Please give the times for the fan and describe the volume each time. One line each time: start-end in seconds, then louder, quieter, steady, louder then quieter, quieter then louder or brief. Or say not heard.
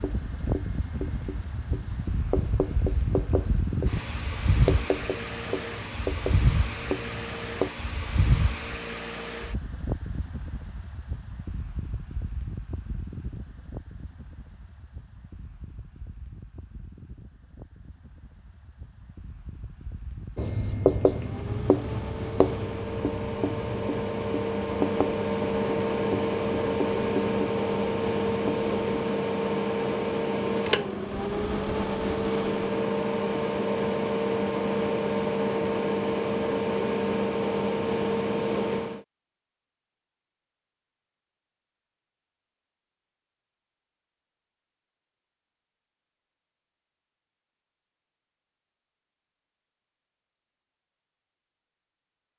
0.0-39.0 quieter then louder.